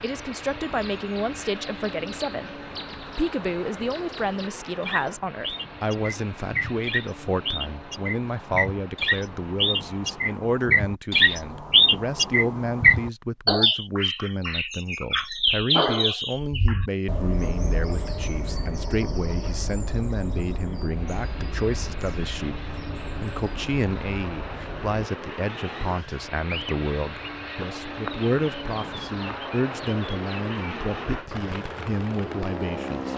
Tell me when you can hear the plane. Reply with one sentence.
You can hear the plane from 0.0 to 10.4 s and from 20.9 to 33.1 s.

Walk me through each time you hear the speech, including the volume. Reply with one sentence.
The speech can be heard from 0.0 to 33.1 s, at a steady volume.